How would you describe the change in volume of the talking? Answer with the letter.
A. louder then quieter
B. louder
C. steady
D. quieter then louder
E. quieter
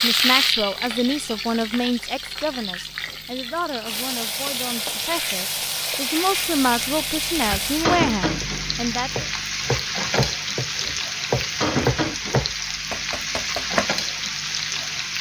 D.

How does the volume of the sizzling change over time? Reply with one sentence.
The loudness of the sizzling stays about the same.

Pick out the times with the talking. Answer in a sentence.
You can hear the talking from 0.0 to 9.2 s.